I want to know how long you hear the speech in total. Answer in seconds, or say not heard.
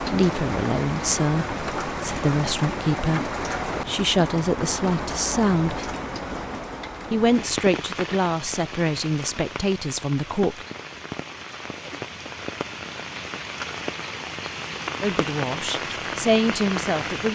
12 s.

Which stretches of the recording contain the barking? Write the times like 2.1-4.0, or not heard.
not heard.